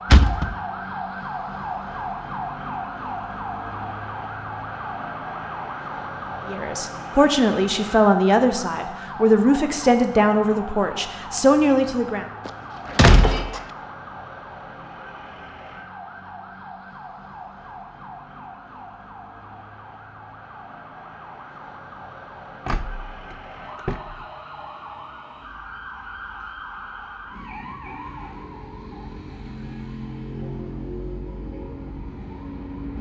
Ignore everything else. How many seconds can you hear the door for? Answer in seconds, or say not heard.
3 s.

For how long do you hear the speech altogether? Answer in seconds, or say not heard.
6 s.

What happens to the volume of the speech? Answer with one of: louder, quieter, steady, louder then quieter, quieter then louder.
steady.